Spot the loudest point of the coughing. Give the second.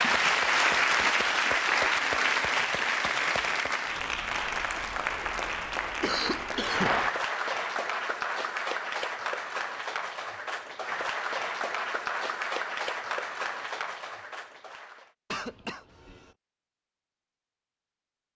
6 s.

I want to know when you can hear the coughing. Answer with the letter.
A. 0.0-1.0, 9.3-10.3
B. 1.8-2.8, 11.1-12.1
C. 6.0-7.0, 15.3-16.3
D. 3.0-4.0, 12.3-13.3
C.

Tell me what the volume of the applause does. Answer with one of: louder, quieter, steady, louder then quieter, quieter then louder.
quieter.